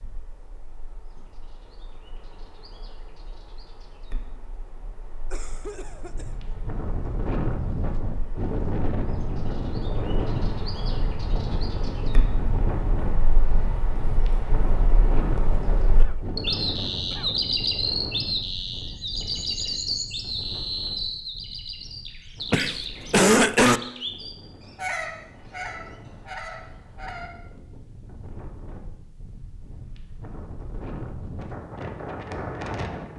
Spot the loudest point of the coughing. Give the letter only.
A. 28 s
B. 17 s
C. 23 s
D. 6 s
C.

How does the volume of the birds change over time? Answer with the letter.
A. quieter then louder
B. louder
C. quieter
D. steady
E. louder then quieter
E.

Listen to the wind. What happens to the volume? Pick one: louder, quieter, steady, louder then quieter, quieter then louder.
quieter then louder.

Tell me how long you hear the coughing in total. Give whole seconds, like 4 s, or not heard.
4 s.